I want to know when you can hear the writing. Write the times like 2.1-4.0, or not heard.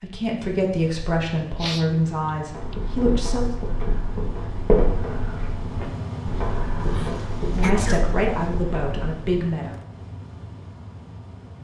2.5-9.2.